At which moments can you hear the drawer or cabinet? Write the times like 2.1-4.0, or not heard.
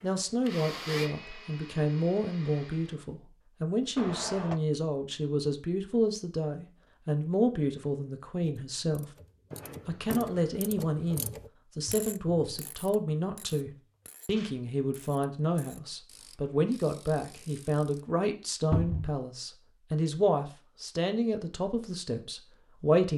4.0-4.6, 9.5-11.2, 18.7-19.1.